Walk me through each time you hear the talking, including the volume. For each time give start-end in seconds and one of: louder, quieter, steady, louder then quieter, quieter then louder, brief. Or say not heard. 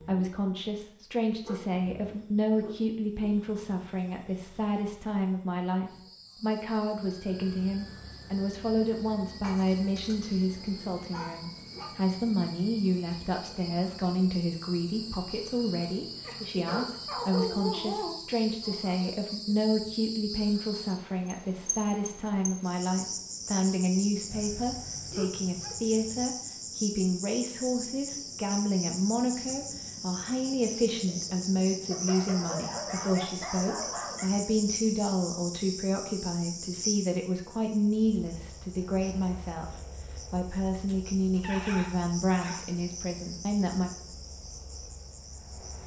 0.0-43.9 steady.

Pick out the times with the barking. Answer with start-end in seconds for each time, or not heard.
1.4-3.4, 9.4-11.9, 16.2-18.1, 24.2-26.2, 31.9-34.3, 40.9-42.6.